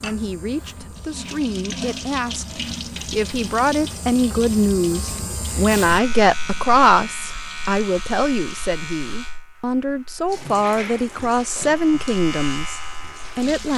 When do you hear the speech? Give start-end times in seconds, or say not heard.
0.0-13.7.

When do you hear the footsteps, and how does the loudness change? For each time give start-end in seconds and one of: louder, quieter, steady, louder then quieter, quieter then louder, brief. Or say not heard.
not heard.